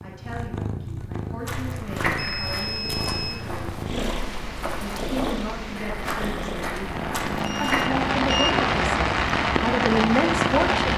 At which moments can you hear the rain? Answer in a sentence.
You can hear the rain from 2.5 to 10.9 s.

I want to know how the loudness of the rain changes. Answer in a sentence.
The volume of the rain goes up.